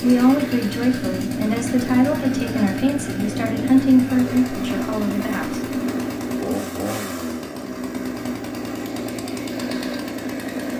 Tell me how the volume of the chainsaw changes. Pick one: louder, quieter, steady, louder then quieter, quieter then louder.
steady.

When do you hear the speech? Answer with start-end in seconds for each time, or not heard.
0.0-5.6.